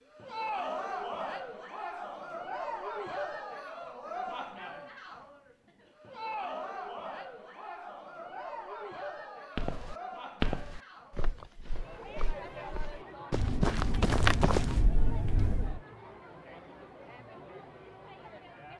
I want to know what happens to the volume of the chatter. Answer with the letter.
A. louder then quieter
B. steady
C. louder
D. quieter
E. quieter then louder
D.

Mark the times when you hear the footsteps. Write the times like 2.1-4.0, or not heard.
9.6-15.8.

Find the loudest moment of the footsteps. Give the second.
14 s.